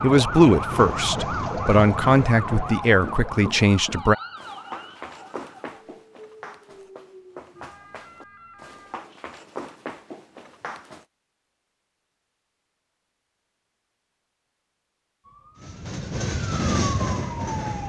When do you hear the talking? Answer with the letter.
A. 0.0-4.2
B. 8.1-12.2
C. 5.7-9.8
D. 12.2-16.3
A.